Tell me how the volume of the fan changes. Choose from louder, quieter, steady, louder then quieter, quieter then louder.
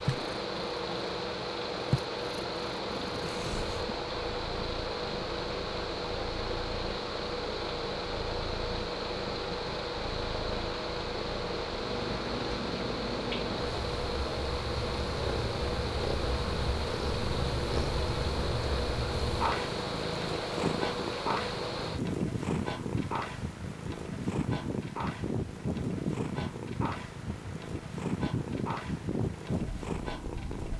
steady.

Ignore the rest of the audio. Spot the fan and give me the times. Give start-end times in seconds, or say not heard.
0.0-30.7.